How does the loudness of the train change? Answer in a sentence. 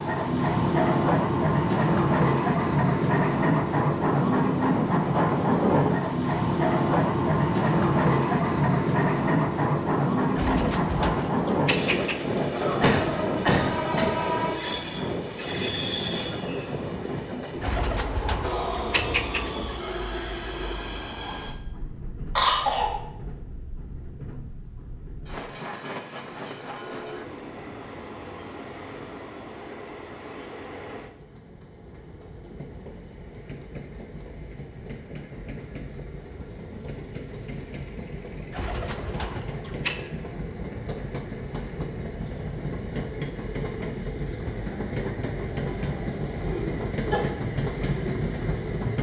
The volume of the train goes down, then up.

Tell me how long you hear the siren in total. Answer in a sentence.
The siren can't be heard in this clip.